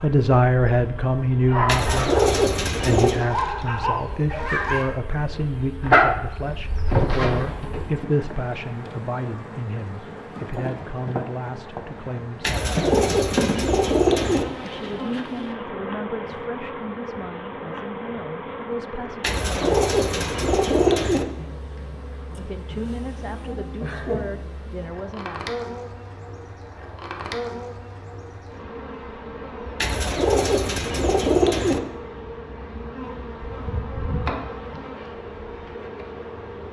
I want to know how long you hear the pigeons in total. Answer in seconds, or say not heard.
8 s.